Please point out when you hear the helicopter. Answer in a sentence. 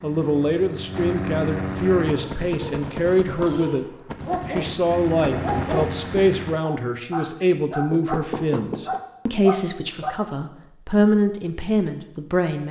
The helicopter can be heard from 0.0 to 2.2 s and from 4.8 to 6.6 s.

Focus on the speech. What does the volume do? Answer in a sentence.
The loudness of the speech stays about the same.